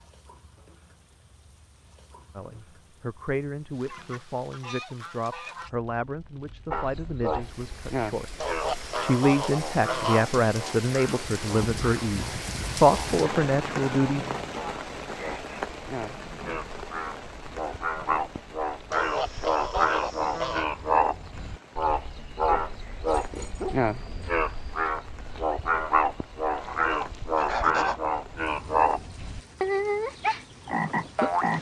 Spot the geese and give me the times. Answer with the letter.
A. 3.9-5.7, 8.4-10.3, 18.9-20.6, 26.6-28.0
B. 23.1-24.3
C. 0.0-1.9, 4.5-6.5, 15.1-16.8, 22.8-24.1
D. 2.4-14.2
A.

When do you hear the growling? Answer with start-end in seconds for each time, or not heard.
23.1-24.3.